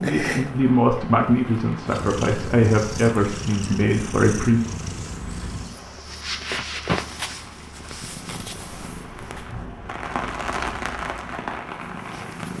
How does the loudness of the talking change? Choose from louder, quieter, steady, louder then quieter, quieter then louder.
steady.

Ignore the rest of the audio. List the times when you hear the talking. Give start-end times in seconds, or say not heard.
0.0-4.7.